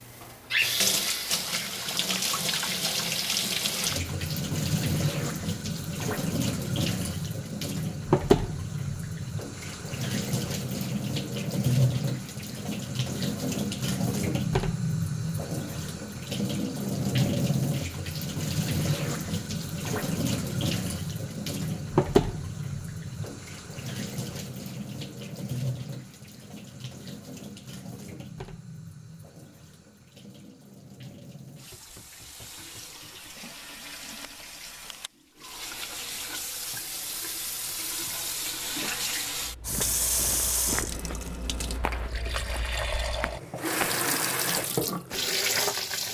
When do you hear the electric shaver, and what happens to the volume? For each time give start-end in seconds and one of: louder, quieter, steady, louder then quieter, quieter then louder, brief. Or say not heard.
not heard.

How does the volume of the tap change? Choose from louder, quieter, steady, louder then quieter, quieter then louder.
quieter then louder.